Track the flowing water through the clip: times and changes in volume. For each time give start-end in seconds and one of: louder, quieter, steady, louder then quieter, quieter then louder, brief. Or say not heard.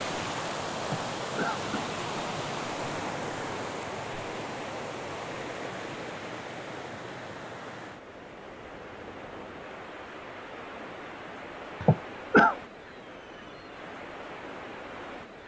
0.0-15.4 quieter.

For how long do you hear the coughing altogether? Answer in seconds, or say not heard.
2 s.